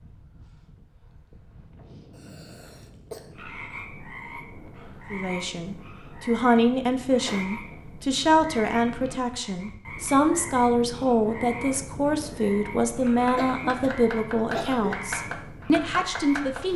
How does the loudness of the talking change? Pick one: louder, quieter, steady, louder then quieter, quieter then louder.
steady.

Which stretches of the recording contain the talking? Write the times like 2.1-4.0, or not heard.
5.1-16.7.